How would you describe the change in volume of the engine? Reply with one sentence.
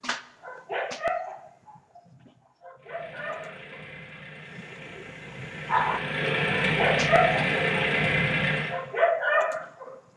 The loudness of the engine goes up.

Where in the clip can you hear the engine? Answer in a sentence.
The engine can be heard from 2.8 to 8.8 s.